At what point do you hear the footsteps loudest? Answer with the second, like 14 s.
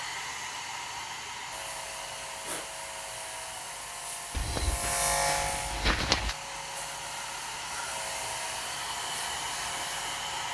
6 s.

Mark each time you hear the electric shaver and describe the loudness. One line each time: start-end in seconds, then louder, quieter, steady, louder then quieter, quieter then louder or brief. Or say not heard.
1.5-10.4 louder then quieter.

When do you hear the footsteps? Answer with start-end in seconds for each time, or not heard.
4.3-6.3.